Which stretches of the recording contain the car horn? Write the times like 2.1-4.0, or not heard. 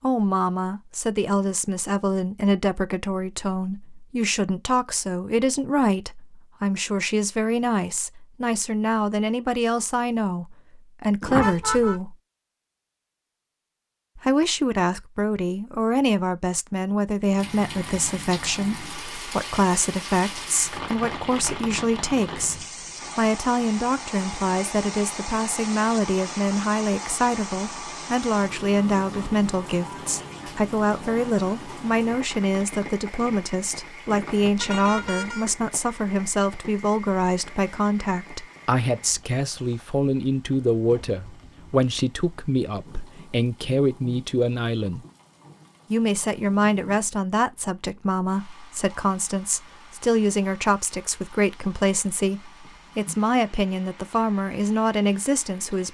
11.2-12.0, 34.6-35.5.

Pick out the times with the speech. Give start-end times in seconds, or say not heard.
0.0-12.2, 14.2-45.0, 45.9-55.9.